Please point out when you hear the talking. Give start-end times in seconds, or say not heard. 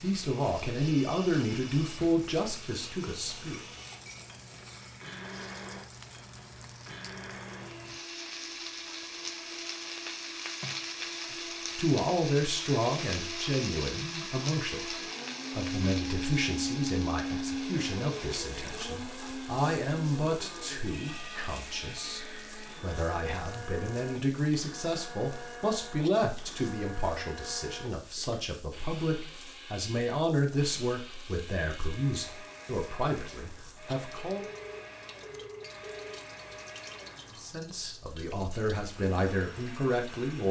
0.0-3.6, 11.8-34.5, 37.3-40.4.